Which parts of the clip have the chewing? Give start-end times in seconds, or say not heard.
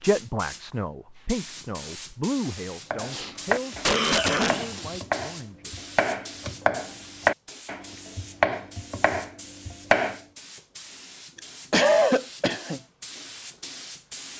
not heard.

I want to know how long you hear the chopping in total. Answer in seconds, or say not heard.
7 s.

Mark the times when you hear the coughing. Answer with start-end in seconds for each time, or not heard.
3.1-5.0, 11.3-12.8.